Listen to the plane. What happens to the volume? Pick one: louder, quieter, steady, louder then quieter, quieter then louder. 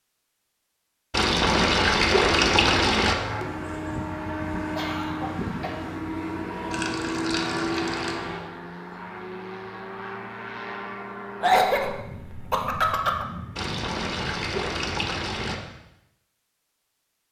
quieter.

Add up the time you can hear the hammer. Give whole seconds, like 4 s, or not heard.
not heard.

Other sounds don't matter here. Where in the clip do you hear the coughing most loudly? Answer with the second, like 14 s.
12 s.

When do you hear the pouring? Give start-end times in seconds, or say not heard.
1.1-3.1, 6.7-8.2, 13.6-15.6.